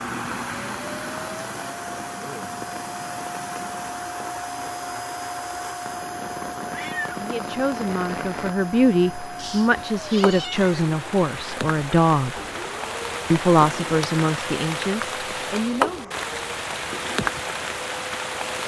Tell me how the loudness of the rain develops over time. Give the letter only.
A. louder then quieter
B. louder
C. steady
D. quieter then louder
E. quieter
B.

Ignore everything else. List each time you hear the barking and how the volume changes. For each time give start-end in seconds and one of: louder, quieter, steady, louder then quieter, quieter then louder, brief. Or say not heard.
not heard.